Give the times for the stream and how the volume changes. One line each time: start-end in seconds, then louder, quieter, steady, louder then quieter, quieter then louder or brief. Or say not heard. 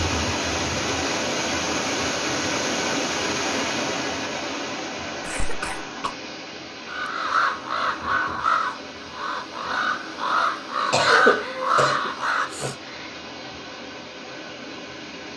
0.0-15.3 quieter.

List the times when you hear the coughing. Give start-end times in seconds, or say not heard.
5.2-6.2, 10.9-12.8.